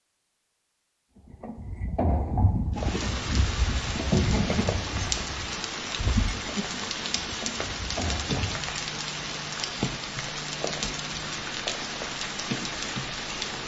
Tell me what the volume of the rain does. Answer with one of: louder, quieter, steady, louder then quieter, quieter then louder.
steady.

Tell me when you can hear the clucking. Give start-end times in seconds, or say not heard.
not heard.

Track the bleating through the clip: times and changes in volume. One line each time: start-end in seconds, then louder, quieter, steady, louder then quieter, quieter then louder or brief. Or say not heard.
1.2-8.7 quieter.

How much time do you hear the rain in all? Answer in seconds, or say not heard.
11 s.